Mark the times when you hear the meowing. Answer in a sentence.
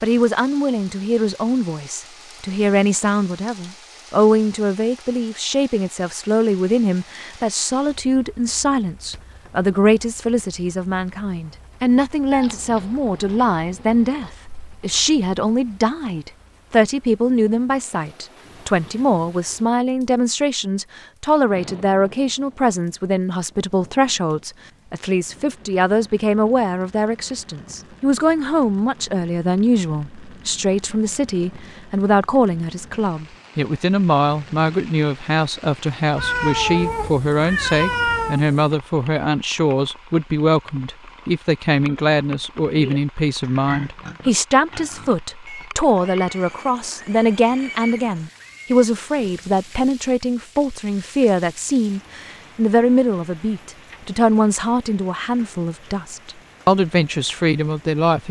You can hear the meowing from 12.3 to 14.3 s and from 36.1 to 38.4 s.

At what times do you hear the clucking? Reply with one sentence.
You can't hear the clucking here.